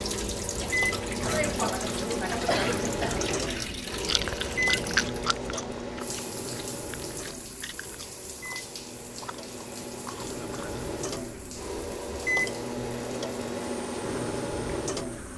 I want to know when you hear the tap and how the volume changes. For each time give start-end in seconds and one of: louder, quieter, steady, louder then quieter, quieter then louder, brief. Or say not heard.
0.0-15.3 quieter.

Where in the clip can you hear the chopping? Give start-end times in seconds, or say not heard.
not heard.